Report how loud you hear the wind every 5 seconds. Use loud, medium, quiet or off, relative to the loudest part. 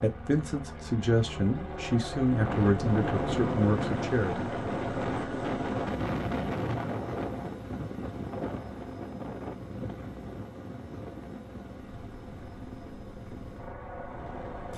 loud, loud, quiet.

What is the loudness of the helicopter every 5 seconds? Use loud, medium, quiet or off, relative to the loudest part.
loud, loud, medium.